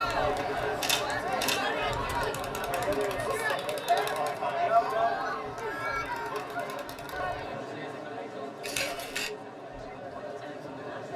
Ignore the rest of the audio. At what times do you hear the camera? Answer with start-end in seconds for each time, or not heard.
0.1-1.6, 8.6-9.3.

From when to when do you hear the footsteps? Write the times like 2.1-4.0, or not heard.
not heard.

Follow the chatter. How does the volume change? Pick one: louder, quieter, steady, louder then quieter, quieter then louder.
quieter.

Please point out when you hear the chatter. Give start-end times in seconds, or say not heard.
0.0-11.1.